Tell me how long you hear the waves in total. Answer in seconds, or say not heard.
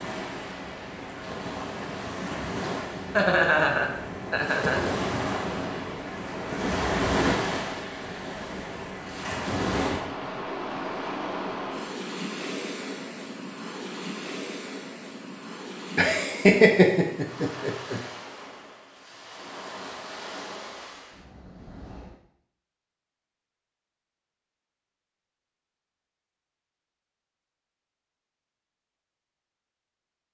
22 s.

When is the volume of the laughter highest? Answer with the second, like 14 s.
17 s.